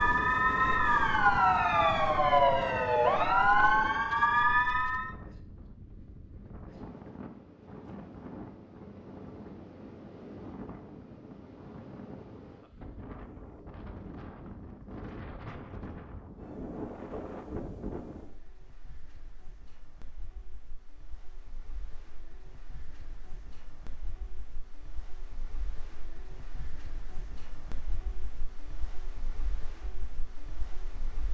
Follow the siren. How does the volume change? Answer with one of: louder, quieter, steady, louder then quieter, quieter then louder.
steady.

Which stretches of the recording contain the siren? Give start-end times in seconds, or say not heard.
0.0-5.2.